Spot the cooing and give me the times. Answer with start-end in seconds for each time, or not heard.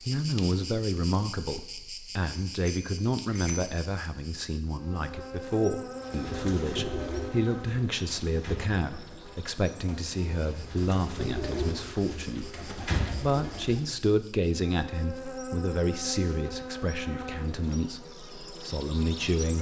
6.0-13.8.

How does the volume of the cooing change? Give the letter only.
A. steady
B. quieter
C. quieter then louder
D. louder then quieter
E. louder
C.